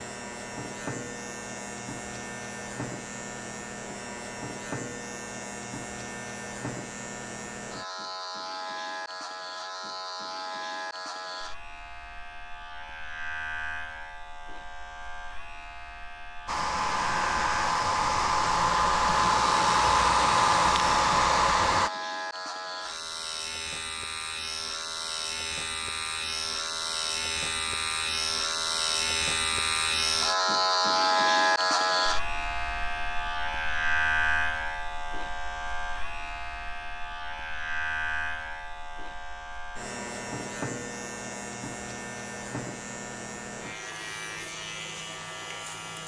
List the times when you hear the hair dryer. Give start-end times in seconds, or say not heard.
16.4-21.9.